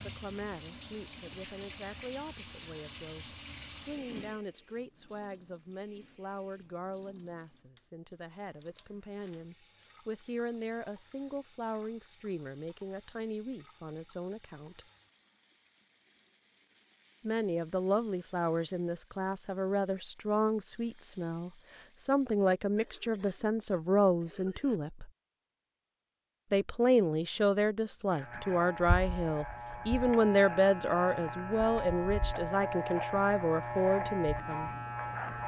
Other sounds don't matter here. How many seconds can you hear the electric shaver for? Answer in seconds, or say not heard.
7 s.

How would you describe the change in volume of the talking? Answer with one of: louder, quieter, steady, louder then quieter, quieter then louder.
louder.